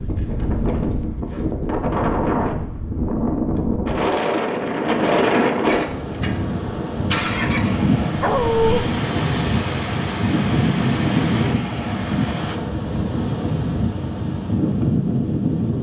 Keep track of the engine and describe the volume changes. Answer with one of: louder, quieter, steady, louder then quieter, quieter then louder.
steady.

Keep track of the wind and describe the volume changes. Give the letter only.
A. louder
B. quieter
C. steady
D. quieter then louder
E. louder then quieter
C.